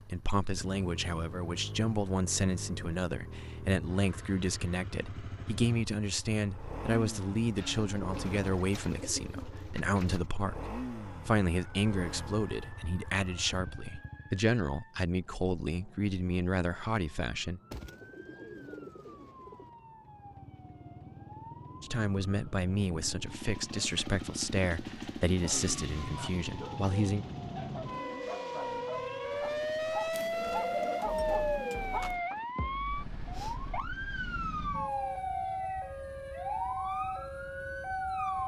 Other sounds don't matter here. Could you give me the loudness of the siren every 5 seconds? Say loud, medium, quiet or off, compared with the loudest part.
off, off, quiet, quiet, quiet, loud, loud, loud.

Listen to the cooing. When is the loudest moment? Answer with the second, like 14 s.
31 s.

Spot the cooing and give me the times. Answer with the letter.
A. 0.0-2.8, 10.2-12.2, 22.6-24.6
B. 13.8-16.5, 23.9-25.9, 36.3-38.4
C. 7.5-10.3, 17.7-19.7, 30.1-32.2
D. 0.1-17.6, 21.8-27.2
C.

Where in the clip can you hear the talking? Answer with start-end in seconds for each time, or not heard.
0.1-17.6, 21.8-27.2.